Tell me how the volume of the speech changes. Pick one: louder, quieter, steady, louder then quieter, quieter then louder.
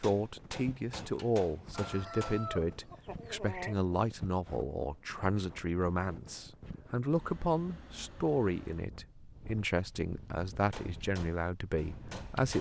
steady.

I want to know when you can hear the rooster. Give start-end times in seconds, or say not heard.
1.7-3.8.